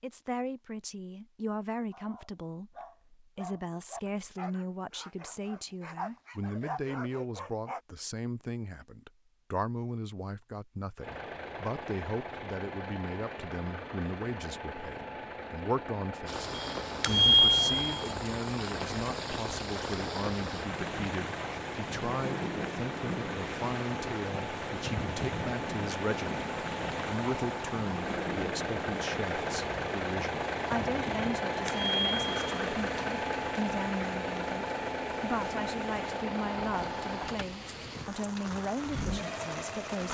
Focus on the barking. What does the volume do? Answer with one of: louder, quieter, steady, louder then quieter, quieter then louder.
louder.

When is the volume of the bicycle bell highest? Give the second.
17 s.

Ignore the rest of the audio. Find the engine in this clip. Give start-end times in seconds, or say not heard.
11.0-40.0.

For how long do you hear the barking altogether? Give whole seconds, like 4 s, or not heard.
6 s.